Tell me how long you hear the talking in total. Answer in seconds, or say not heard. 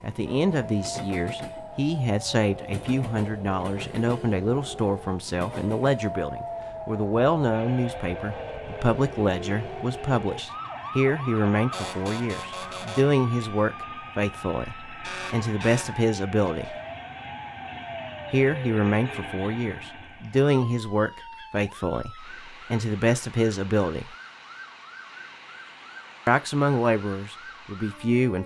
25 s.